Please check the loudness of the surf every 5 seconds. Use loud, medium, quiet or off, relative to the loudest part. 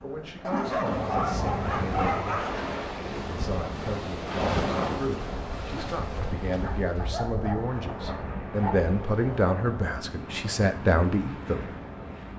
loud, medium, medium.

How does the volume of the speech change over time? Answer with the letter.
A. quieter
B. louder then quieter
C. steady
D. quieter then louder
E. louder
E.